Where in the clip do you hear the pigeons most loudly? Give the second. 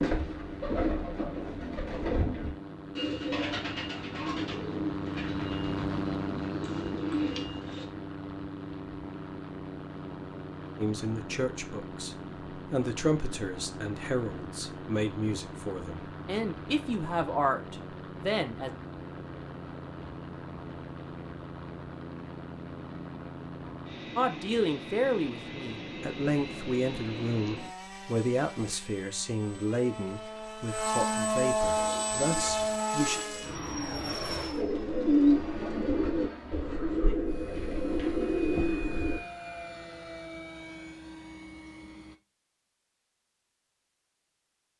35 s.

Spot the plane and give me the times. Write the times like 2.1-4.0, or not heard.
0.1-42.2.